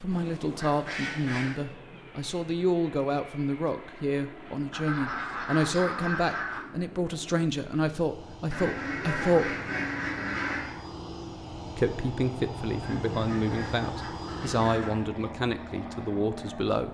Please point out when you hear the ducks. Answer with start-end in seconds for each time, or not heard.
0.1-1.6, 4.7-6.7, 8.5-10.8, 12.8-15.1.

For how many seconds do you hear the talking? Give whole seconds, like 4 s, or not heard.
15 s.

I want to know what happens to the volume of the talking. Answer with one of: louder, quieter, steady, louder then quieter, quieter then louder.
steady.